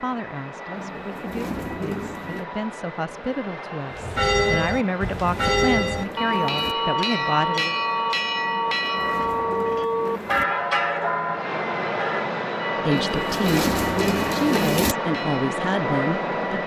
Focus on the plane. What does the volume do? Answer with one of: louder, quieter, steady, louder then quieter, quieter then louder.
louder.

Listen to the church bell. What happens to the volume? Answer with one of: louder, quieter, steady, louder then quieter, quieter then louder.
quieter.